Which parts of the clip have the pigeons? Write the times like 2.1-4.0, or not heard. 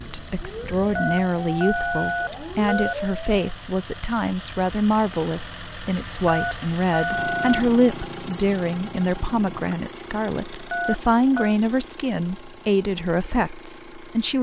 not heard.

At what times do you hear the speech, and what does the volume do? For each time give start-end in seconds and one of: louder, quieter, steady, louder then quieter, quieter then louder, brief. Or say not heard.
0.0-14.3 steady.